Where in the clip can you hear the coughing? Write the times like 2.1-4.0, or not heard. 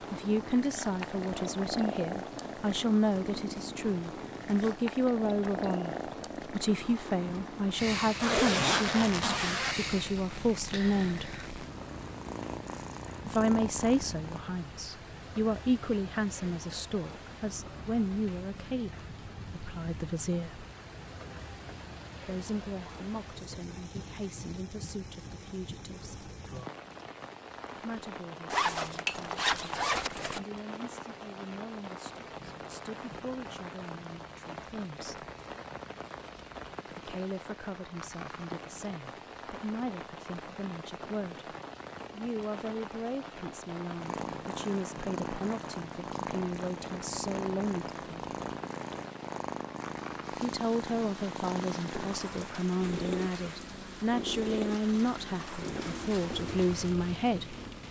not heard.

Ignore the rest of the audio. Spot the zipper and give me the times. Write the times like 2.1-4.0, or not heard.
8.2-9.8, 28.5-30.4, 52.1-52.6.